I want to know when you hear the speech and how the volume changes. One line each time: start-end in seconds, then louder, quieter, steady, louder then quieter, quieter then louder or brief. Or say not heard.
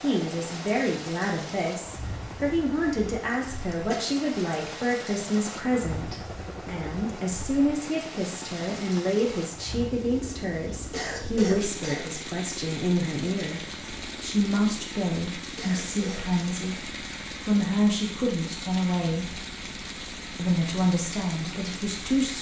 0.0-19.4 steady
20.4-22.3 brief.